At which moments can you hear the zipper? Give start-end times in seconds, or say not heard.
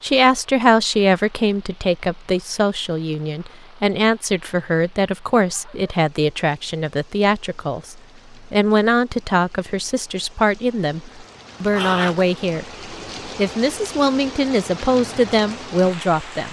11.7-12.3.